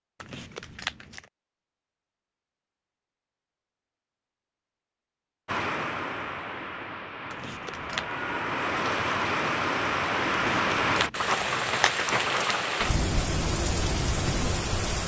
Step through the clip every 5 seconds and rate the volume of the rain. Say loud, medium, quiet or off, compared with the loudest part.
off, loud, loud.